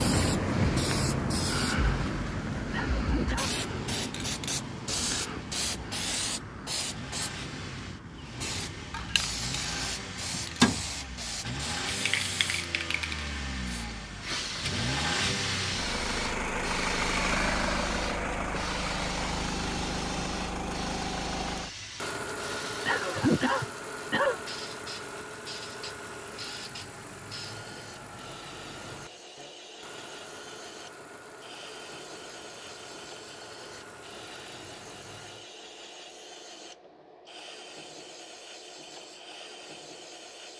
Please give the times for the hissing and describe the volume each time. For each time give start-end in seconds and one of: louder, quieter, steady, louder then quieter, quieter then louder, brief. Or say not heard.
0.0-40.5 quieter.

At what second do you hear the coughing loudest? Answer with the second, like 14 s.
23 s.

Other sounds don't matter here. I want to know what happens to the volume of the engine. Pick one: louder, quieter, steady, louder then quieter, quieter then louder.
louder then quieter.